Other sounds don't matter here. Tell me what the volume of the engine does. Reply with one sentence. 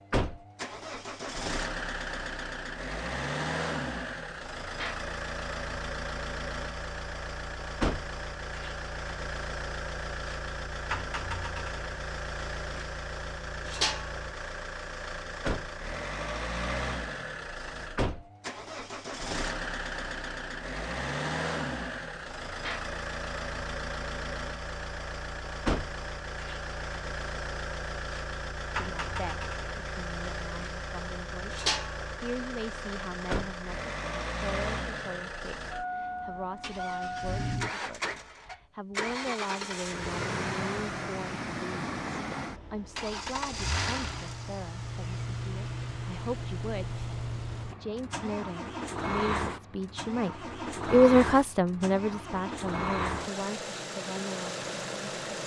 The volume of the engine stays about the same.